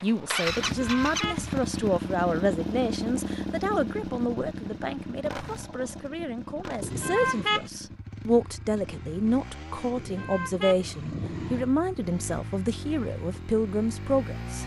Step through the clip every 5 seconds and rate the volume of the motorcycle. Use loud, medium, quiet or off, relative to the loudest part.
loud, medium, medium.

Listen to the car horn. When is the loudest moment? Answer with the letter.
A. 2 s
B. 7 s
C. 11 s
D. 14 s
B.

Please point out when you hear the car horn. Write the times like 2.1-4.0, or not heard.
0.6-1.5, 6.8-7.7, 9.9-11.8.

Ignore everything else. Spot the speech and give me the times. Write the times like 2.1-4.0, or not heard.
0.0-14.6.